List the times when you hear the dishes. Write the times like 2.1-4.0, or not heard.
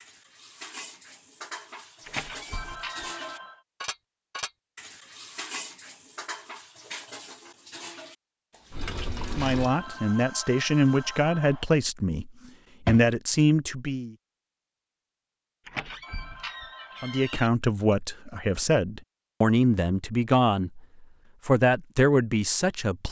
0.0-9.8.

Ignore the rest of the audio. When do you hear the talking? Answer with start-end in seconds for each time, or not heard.
9.2-14.2, 17.0-23.0.